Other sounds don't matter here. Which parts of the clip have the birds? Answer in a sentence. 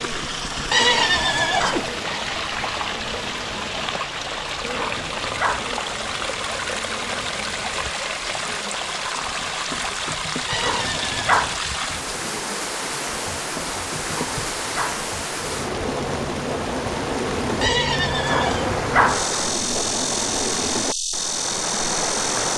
The birds can't be heard in this clip.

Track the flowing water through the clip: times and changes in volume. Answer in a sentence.
You can hear the flowing water from 0.0 to 22.5 s, at a steady volume.